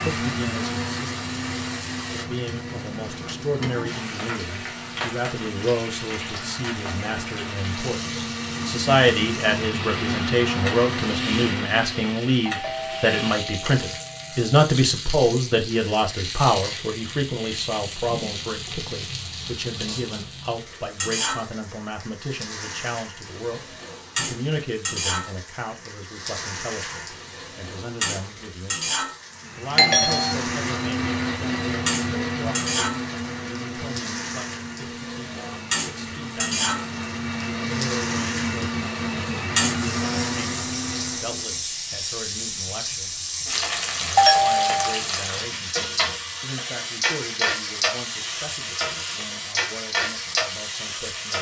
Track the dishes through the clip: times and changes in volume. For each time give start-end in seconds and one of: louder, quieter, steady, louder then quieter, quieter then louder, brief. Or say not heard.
not heard.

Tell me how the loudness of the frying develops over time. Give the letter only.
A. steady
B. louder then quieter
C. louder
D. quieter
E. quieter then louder
C.